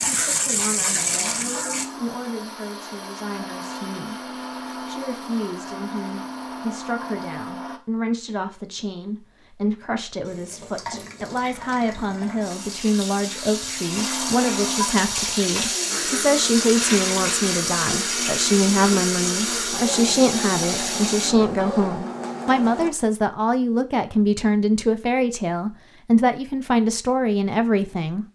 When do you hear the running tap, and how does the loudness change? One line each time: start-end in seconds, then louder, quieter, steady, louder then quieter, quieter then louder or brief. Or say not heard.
0.0-1.9 brief
10.2-21.3 louder.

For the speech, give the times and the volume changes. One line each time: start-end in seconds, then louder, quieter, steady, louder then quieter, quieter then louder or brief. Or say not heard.
0.1-28.2 louder.